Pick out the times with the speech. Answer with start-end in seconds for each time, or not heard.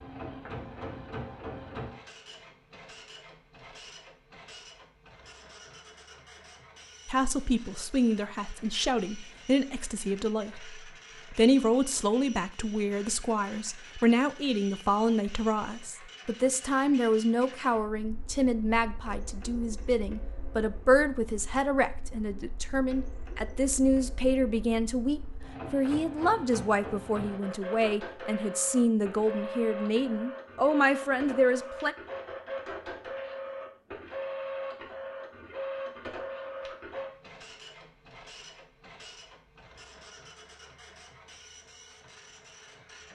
7.0-31.9.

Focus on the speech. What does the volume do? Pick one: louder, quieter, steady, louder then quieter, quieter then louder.
steady.